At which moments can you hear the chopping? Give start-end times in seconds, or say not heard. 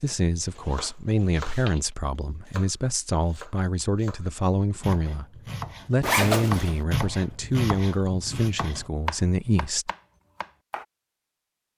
0.6-10.8.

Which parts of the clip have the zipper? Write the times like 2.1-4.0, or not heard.
0.5-1.8, 6.0-6.8.